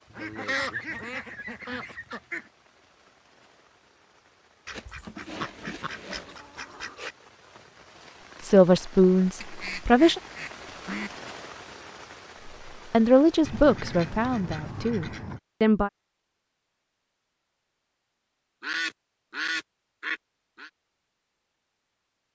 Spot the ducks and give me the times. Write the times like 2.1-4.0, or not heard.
0.1-2.5, 4.7-7.2, 9.4-11.2, 13.4-15.4, 18.6-20.7.